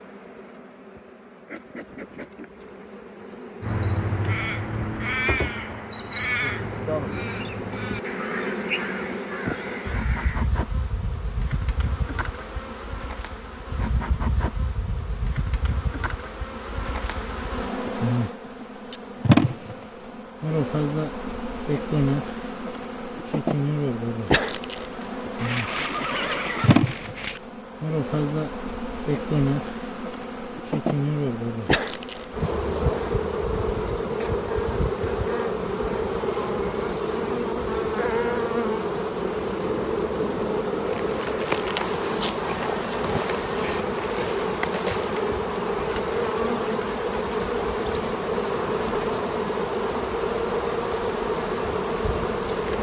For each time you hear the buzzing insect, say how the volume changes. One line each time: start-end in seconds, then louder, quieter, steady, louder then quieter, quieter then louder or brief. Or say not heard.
0.0-52.7 louder.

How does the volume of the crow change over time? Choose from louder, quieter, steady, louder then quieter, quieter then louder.
quieter.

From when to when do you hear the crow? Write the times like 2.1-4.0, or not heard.
3.6-10.5.